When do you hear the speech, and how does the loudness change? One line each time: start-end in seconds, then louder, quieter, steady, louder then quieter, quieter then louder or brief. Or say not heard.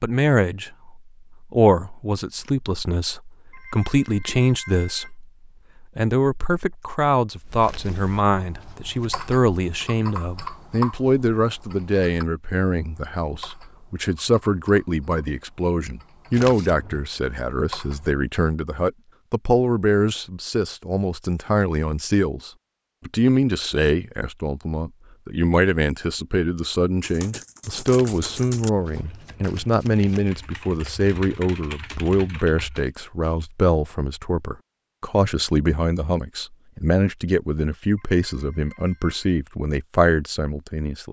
0.0-41.0 steady.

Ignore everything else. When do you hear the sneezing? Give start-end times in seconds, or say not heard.
not heard.